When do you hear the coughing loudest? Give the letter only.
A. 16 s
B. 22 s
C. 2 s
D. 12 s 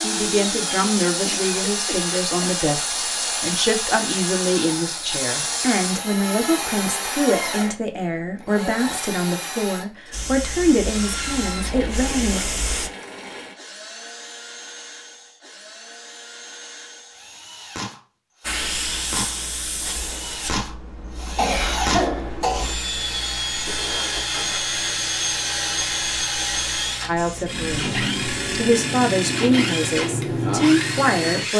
B.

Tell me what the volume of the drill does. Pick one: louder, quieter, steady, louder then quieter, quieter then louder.
quieter then louder.